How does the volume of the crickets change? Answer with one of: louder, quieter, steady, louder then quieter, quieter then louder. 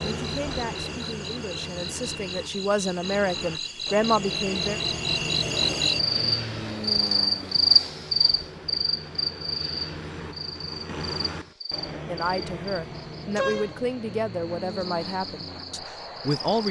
louder then quieter.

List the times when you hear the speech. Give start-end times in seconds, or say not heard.
0.2-4.8, 12.1-16.6.